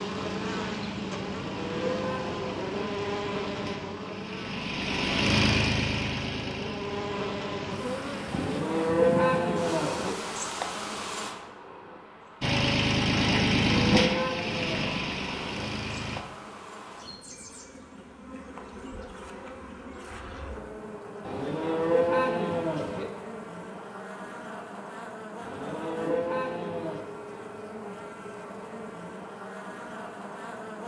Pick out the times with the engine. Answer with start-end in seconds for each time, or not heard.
0.0-8.6, 12.4-16.2.